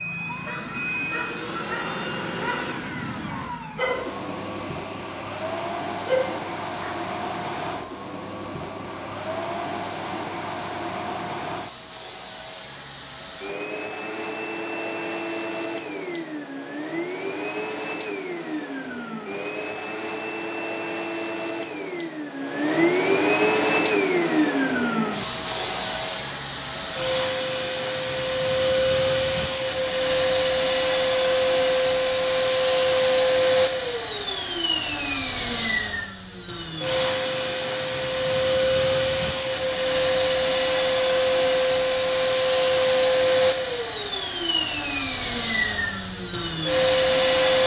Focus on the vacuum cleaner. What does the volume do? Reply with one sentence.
The volume of the vacuum cleaner goes up.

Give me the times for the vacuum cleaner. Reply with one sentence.
You can hear the vacuum cleaner from 0.0 to 47.6 s.